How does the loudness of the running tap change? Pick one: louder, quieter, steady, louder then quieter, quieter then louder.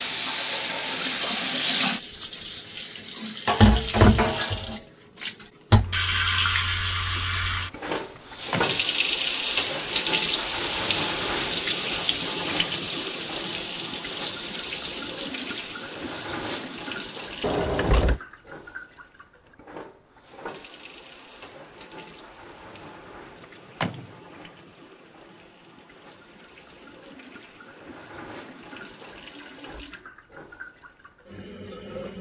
quieter.